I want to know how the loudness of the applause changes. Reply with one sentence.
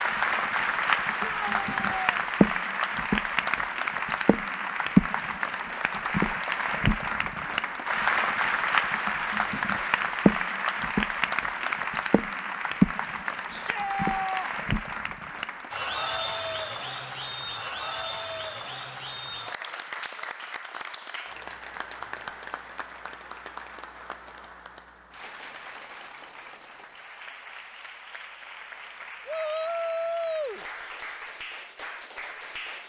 The volume of the applause goes down.